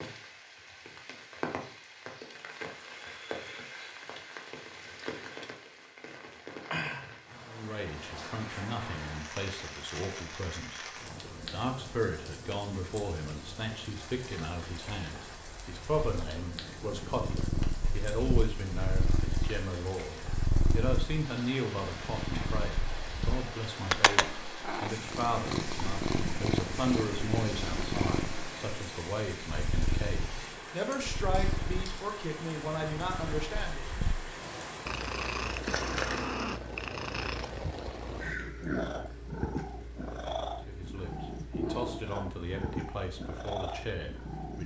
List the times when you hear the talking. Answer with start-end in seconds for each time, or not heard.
7.5-33.9, 40.6-44.6.